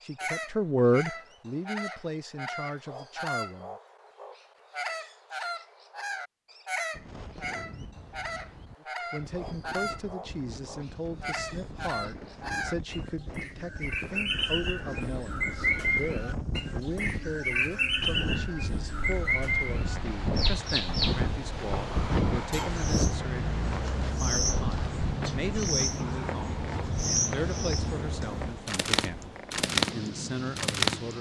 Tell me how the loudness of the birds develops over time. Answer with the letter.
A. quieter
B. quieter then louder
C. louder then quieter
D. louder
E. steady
D.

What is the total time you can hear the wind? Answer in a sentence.
The wind can be heard for 24 seconds in total.